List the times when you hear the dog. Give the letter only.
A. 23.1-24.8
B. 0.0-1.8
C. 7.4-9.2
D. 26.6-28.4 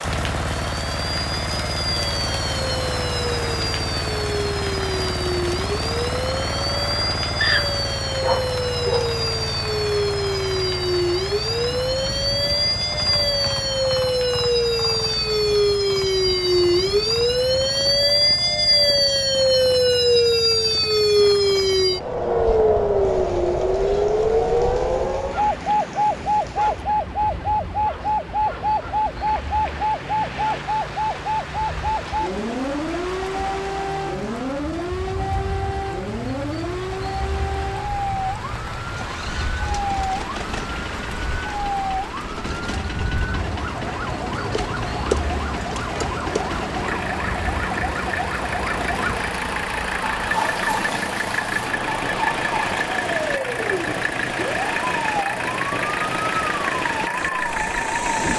C.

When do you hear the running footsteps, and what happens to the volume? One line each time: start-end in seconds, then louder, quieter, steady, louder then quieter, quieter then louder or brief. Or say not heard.
not heard.